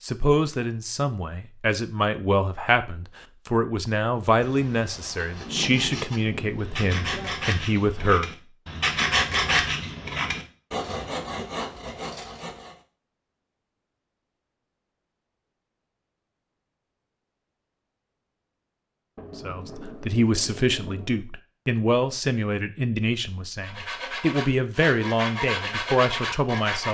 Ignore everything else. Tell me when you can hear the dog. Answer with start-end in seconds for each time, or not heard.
not heard.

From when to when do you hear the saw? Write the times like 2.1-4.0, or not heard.
5.0-12.8, 23.6-26.8.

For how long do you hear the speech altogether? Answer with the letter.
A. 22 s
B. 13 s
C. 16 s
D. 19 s
C.